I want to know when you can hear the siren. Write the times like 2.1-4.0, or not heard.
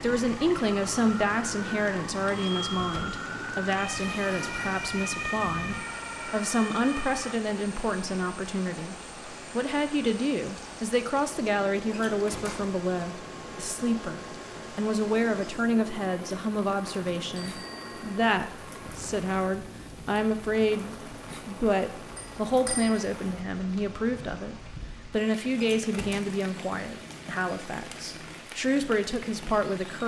0.1-7.3.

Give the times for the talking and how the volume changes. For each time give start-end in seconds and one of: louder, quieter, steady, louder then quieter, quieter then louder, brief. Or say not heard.
0.0-30.0 steady.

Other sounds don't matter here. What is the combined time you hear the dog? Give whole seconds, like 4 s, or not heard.
not heard.